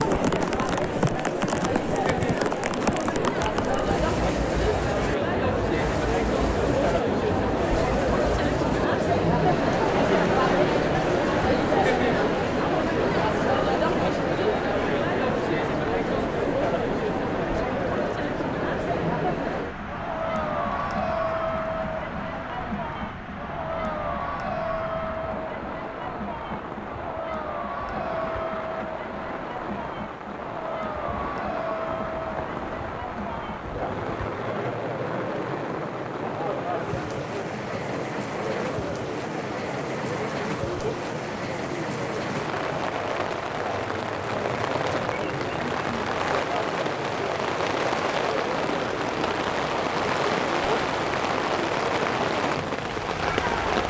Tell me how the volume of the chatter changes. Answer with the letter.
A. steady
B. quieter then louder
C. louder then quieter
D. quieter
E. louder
D.